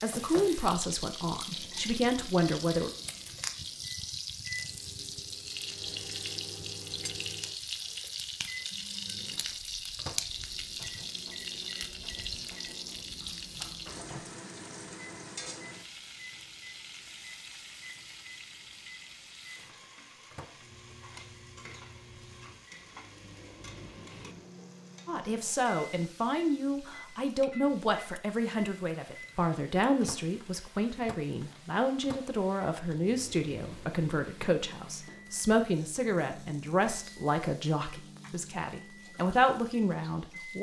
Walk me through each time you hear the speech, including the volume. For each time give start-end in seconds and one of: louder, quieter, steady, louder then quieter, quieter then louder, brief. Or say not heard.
0.0-2.9 brief
25.1-40.5 steady.